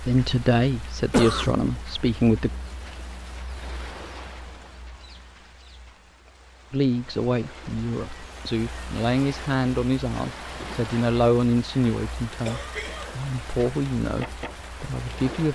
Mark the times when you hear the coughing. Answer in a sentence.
The coughing can be heard from 1.1 to 1.6 s and from 12.4 to 13.2 s.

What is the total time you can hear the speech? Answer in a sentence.
The speech can be heard for 11 seconds in total.